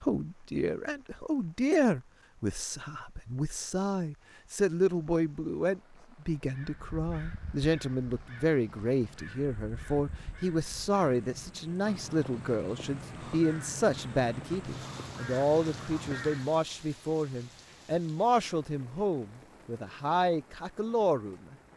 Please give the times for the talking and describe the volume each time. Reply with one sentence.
The talking can be heard from 0.0 to 21.6 s, at a steady volume.